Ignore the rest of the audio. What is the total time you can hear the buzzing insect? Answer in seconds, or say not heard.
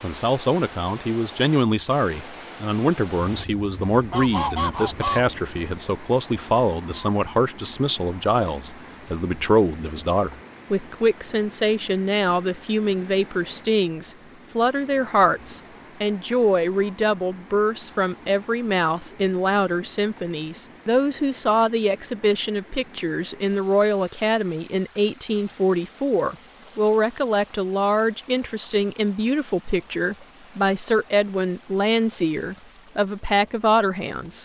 not heard.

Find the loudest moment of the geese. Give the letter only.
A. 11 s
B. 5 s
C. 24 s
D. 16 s
B.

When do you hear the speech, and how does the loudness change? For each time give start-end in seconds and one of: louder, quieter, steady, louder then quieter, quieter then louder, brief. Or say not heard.
0.0-34.4 steady.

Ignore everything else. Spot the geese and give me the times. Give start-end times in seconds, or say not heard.
3.2-5.2.